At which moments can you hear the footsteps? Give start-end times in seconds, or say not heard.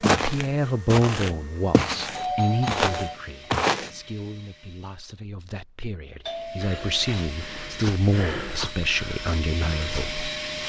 0.0-3.9, 6.6-10.6.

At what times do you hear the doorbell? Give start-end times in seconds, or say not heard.
2.1-3.1, 6.2-7.3.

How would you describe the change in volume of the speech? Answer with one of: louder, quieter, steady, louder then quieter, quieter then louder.
quieter then louder.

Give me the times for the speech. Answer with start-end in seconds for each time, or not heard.
0.1-10.6.